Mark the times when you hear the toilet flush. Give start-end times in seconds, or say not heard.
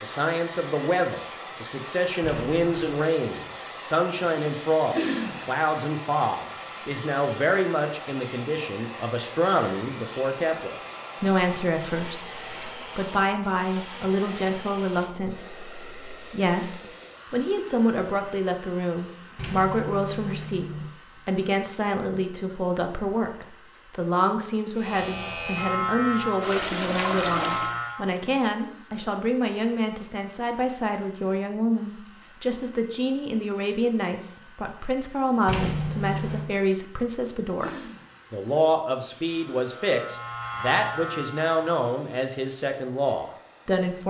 4.9-5.6, 26.4-27.8, 37.6-38.5.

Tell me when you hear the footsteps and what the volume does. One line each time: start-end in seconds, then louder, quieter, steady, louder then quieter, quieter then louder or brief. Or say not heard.
not heard.